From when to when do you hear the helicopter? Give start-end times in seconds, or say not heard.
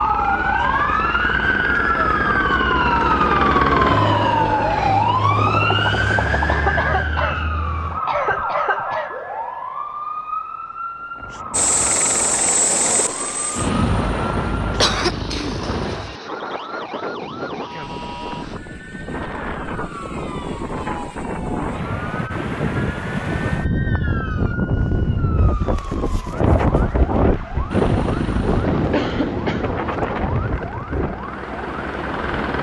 0.0-6.7, 11.5-16.0, 27.7-32.5.